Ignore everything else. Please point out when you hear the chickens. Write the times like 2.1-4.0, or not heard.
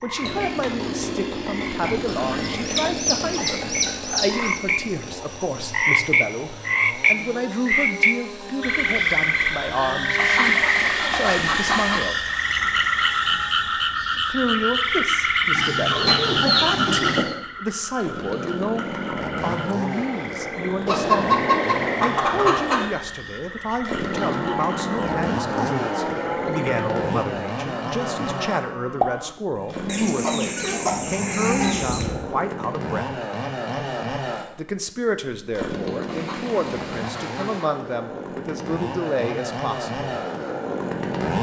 1.8-4.6, 10.2-12.1, 15.5-17.4, 20.9-22.9, 29.9-32.0, 36.0-37.7.